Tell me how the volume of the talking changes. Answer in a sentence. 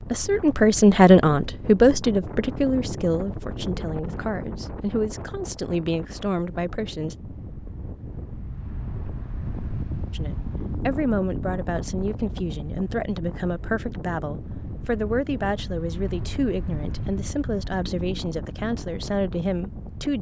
The volume of the talking goes down.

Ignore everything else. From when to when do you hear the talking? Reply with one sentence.
You can hear the talking from 0.0 to 7.2 s and from 10.1 to 20.1 s.